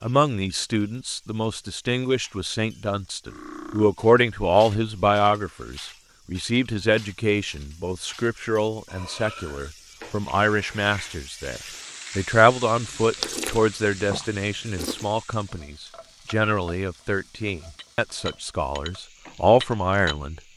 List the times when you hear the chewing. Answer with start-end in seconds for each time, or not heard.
12.8-15.1.